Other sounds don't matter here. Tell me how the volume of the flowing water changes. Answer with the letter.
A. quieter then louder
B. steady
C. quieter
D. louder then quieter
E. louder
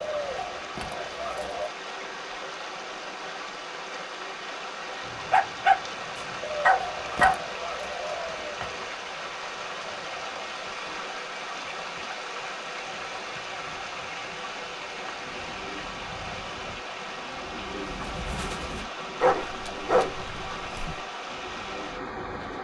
B.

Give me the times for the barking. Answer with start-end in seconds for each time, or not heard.
5.0-7.3, 19.2-21.0.